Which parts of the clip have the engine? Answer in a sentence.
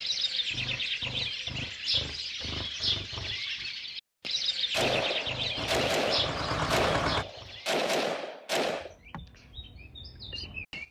You can hear the engine from 5.5 to 7.2 s.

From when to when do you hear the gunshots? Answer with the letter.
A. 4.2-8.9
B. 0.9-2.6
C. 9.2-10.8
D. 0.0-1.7
A.